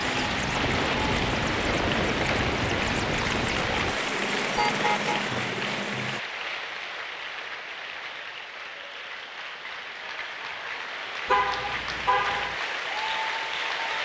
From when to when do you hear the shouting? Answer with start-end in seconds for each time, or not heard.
not heard.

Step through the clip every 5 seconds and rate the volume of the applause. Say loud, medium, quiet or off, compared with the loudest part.
loud, medium, loud.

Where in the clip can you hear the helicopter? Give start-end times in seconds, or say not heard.
0.0-6.2.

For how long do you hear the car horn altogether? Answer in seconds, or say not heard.
2 s.